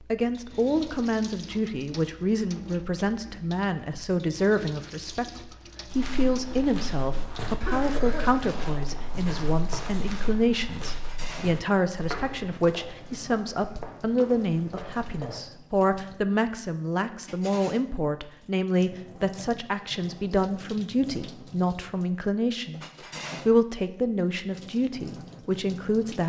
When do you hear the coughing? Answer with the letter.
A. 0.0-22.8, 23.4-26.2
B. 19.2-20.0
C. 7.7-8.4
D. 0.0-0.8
C.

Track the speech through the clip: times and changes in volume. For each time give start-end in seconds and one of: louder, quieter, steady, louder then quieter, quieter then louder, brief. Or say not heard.
0.0-22.8 steady
23.4-26.2 brief.